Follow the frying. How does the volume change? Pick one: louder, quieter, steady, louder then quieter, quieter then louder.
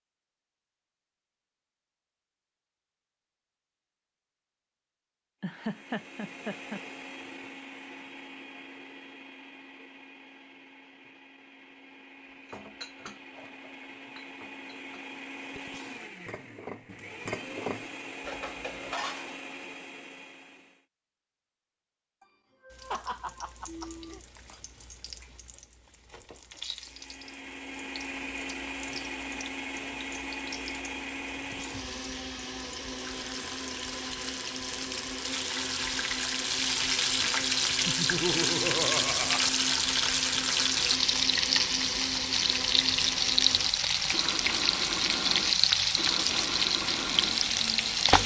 louder.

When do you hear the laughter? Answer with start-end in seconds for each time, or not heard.
5.4-6.8, 22.2-24.2, 37.9-39.5.